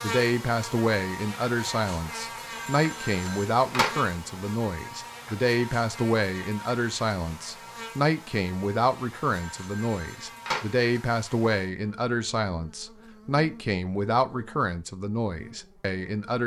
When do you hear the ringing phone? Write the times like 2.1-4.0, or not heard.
2.5-4.0, 9.4-10.7.